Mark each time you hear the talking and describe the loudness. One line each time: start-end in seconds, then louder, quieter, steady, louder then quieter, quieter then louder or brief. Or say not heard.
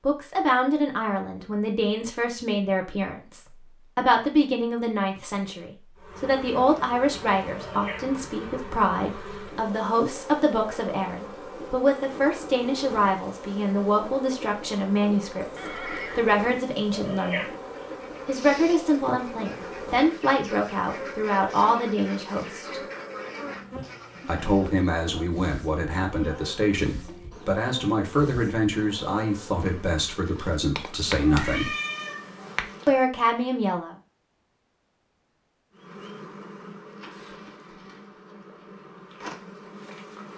0.0-17.5 steady
18.2-22.8 steady
24.2-31.7 steady
32.9-34.0 brief.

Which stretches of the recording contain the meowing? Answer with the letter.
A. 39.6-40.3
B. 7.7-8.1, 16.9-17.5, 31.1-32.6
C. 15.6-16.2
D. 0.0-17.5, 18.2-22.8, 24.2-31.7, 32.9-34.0
B.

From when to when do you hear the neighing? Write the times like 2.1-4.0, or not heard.
15.6-16.2.